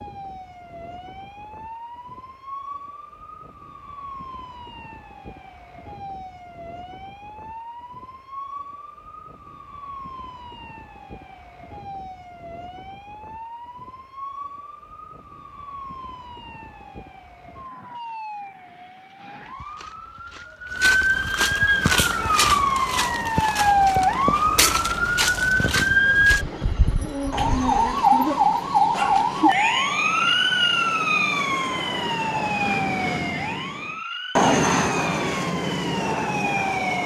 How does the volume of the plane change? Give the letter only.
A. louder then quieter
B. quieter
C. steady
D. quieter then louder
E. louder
E.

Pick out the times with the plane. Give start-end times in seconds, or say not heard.
21.7-37.0.